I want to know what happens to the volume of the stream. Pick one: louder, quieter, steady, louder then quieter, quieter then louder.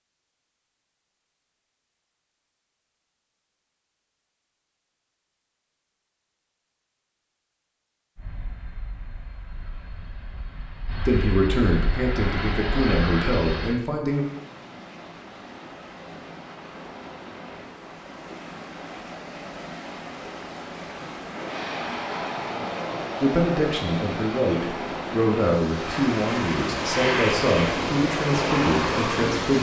louder.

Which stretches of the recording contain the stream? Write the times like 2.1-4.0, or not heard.
14.1-29.5.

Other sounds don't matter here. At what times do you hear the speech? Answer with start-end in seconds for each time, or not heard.
11.1-14.2, 23.2-29.5.